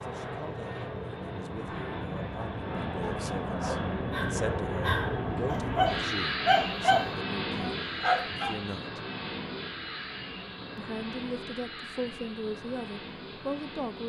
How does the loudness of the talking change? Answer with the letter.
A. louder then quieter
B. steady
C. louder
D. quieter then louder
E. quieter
C.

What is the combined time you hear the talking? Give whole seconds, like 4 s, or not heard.
12 s.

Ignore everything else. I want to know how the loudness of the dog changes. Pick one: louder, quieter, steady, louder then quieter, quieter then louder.
louder.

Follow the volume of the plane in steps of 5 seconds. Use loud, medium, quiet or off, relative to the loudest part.
loud, loud, medium.